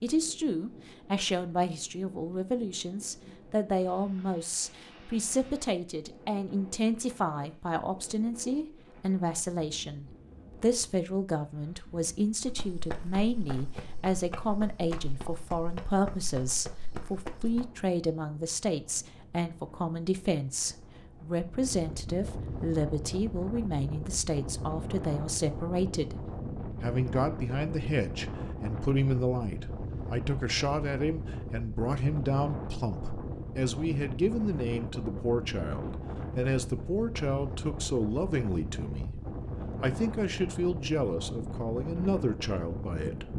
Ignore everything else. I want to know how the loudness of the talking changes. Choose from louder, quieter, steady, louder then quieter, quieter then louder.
steady.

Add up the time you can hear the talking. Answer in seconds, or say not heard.
42 s.